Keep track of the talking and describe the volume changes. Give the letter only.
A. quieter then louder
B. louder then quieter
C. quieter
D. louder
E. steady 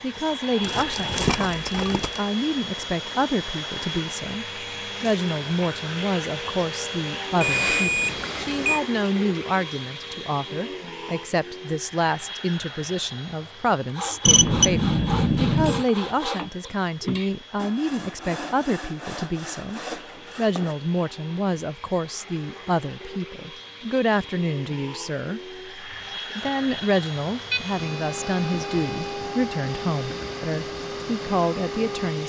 E.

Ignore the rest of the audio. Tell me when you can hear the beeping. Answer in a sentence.
You can hear the beeping from 7.4 to 8.8 s, from 14.2 to 15.8 s and from 27.5 to 29.1 s.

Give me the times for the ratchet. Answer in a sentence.
The ratchet can't be heard in this clip.